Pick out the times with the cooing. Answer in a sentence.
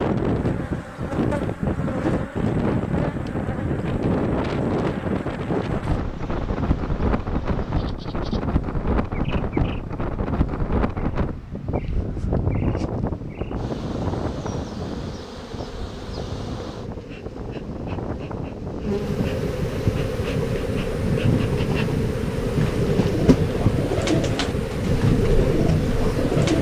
You can hear the cooing from 22.6 to 26.5 s.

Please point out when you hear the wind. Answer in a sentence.
The wind can be heard from 0.0 to 26.5 s.